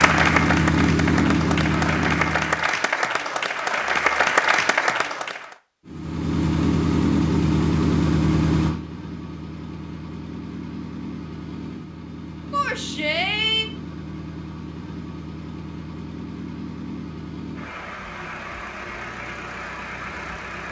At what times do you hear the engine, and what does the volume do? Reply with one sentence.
The engine can be heard briefly from 0.0 to 2.7 s; and from 5.8 to 20.6 s, getting quieter.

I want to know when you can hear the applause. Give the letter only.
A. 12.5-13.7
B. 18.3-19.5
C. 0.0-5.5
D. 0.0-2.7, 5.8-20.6
C.